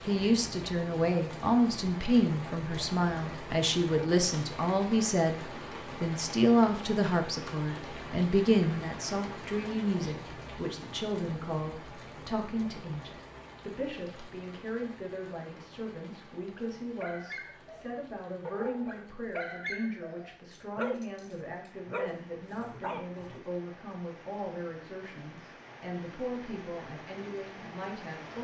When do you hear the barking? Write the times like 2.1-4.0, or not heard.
16.6-23.4.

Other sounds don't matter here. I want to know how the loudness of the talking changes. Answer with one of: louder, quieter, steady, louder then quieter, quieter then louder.
quieter.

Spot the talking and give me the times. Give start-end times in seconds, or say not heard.
0.0-28.3.